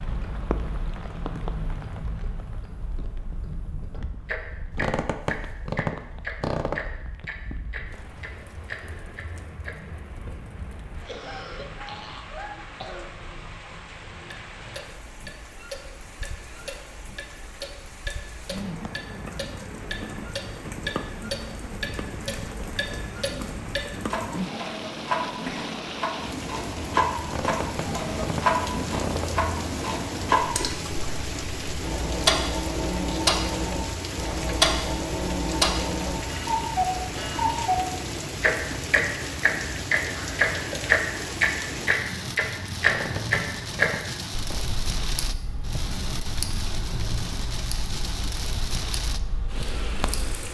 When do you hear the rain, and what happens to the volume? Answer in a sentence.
You can hear the rain from 0.0 to 50.4 s, getting louder.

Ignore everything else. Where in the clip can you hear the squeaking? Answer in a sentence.
You can hear the squeaking from 4.7 to 6.9 s, from 27.2 to 29.4 s and from 42.8 to 44.6 s.